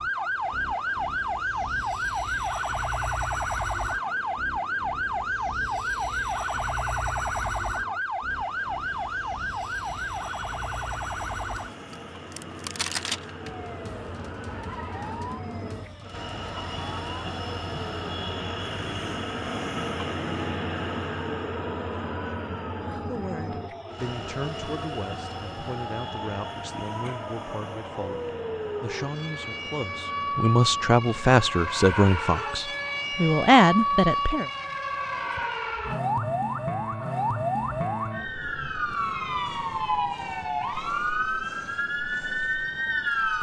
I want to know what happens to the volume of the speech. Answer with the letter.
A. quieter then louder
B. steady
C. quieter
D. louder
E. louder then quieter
D.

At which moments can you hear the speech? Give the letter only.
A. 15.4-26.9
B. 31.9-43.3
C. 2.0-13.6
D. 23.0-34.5
D.